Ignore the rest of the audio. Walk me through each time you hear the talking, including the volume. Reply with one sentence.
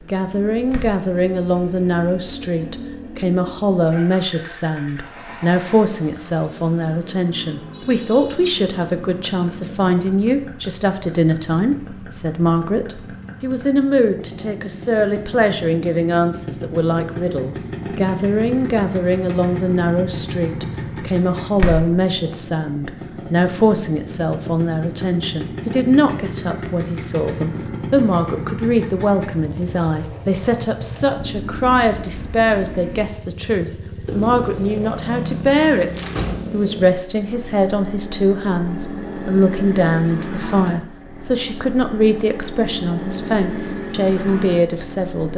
You can hear the talking from 0.1 to 45.3 s, at a steady volume.